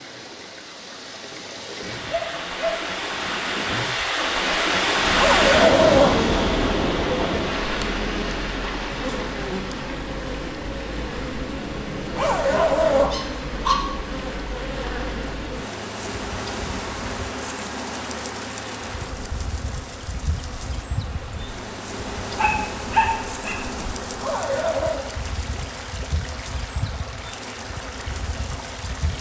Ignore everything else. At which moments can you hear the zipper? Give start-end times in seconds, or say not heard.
5.1-6.2, 12.1-13.2, 24.1-25.1.